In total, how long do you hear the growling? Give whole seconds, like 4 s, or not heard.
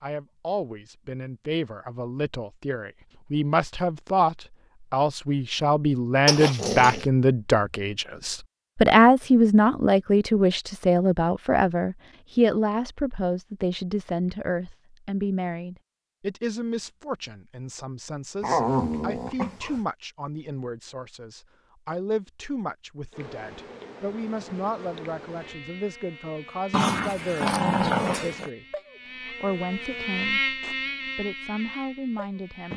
4 s.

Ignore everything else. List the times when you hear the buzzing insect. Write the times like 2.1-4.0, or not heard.
23.1-32.7.